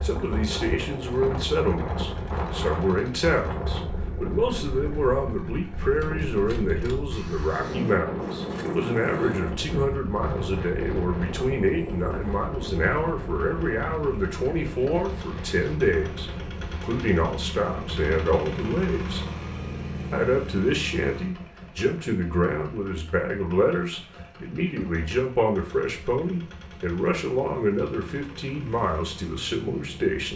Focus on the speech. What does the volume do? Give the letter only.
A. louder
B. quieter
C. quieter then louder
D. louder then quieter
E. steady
E.